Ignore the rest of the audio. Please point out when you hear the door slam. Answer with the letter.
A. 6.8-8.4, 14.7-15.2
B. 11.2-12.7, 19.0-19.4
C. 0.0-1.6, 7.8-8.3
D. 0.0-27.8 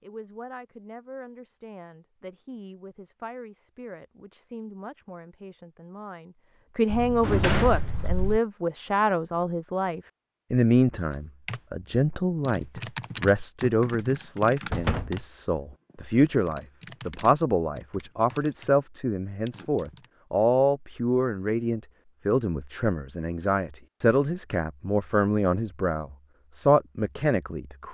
A.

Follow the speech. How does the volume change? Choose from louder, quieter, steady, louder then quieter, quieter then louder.
louder.